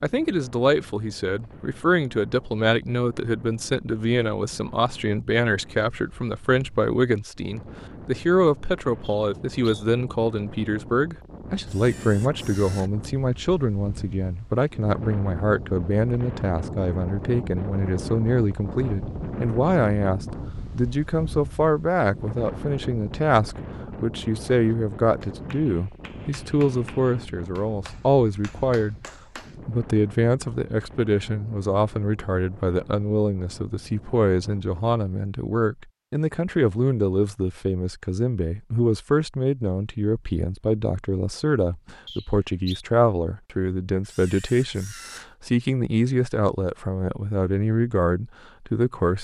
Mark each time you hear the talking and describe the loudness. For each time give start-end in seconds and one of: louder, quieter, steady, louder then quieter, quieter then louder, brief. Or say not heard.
0.0-28.9 steady
29.6-49.1 steady.